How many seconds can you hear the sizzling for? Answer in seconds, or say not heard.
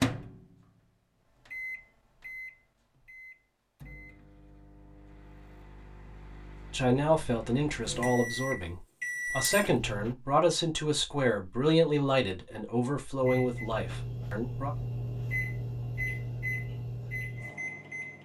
not heard.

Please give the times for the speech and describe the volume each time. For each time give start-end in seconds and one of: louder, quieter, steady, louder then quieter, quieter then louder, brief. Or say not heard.
6.7-14.7 steady.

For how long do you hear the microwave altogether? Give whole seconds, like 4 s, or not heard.
15 s.